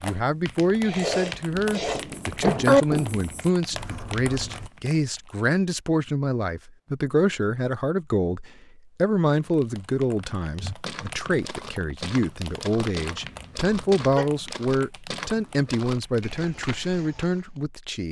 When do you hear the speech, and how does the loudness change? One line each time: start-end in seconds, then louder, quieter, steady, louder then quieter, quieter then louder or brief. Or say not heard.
0.0-18.0 steady.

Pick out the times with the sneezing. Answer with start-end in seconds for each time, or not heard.
0.8-2.9, 13.2-14.3.